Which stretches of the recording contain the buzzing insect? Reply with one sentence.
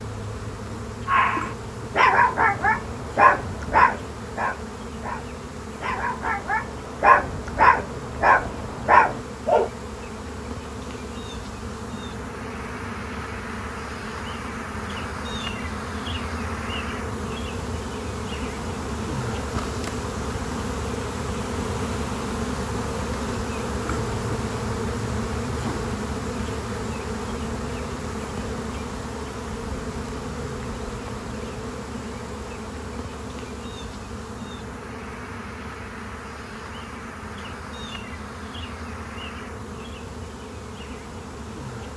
The buzzing insect can be heard from 0.0 to 41.9 s.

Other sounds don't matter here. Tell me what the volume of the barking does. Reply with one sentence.
The volume of the barking goes down, then up.